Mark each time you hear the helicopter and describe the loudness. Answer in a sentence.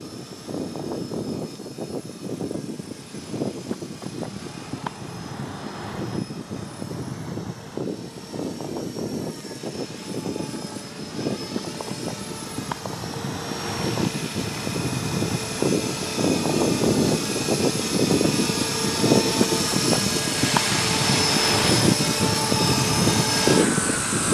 You can hear the helicopter from 0.0 to 24.2 s, getting louder.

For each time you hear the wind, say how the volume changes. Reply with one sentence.
You can hear the wind from 0.0 to 24.2 s, getting louder.